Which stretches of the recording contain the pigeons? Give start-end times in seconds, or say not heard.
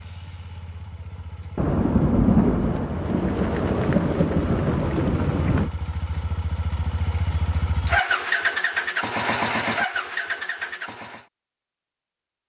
not heard.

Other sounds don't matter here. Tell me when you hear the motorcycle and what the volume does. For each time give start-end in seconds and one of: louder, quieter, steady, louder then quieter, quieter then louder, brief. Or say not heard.
0.0-11.2 louder.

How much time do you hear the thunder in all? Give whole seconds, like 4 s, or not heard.
4 s.